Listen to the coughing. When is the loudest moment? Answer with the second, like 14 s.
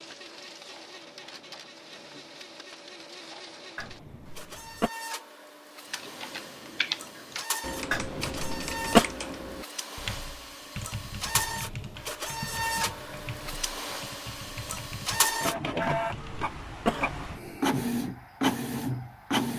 9 s.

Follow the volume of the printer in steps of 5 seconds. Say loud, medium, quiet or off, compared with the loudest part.
quiet, medium, medium, loud.